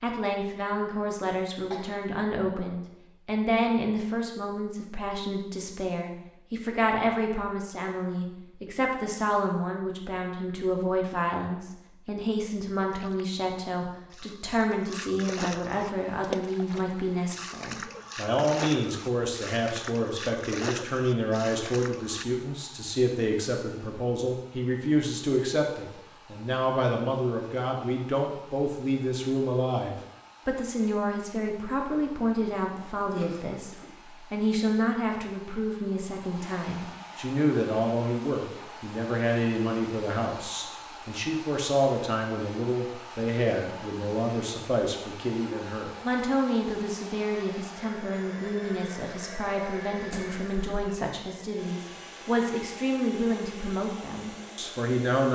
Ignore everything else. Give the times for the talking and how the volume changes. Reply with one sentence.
You can hear the talking from 0.0 to 55.3 s, at a steady volume.